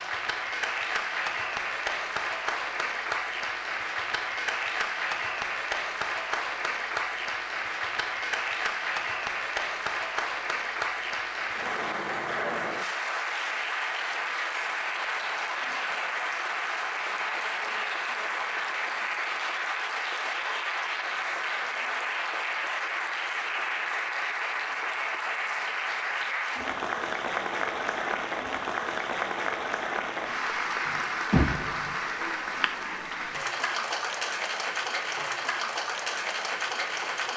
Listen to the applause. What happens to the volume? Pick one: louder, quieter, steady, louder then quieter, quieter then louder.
steady.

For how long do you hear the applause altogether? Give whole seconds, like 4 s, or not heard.
37 s.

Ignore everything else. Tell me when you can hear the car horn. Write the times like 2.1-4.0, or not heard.
30.9-31.9.